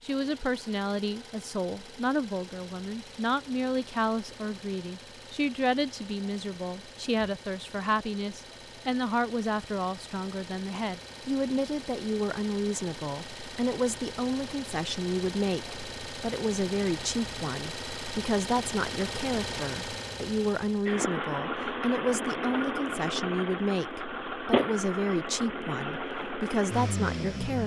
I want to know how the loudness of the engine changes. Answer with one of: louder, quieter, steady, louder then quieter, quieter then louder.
louder.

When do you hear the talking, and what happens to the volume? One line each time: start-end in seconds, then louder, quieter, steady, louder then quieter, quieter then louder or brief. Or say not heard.
0.0-27.6 steady.